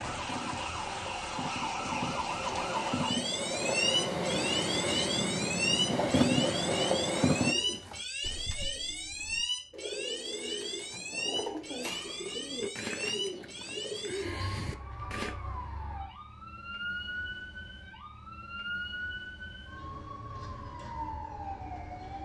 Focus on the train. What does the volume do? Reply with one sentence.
The volume of the train goes up.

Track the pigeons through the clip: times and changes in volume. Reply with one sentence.
You can hear the pigeons from 7.5 to 15.3 s, getting louder.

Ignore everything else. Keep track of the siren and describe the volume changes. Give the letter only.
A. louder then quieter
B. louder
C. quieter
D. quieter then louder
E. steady
C.